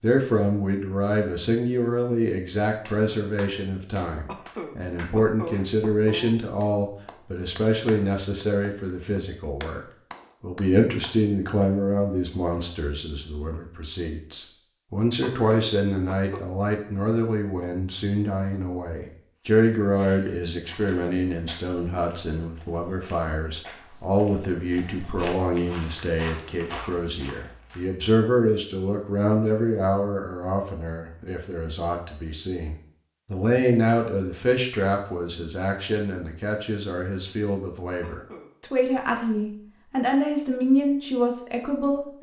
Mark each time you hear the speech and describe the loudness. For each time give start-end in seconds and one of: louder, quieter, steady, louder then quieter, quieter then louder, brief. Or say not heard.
0.0-9.8 steady
10.4-42.1 steady.